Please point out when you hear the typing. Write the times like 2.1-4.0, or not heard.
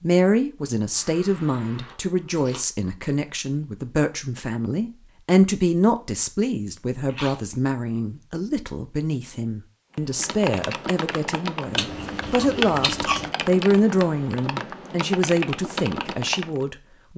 9.9-16.6.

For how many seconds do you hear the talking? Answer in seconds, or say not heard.
17 s.